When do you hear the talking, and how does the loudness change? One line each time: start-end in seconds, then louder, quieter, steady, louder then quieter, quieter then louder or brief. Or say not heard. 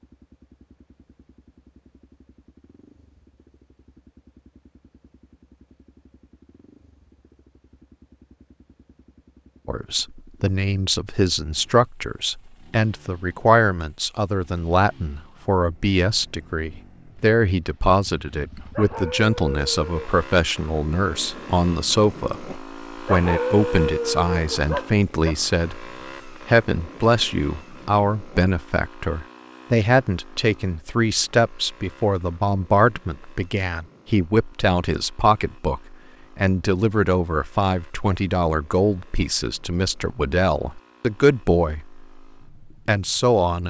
9.7-42.2 steady
42.9-43.6 brief.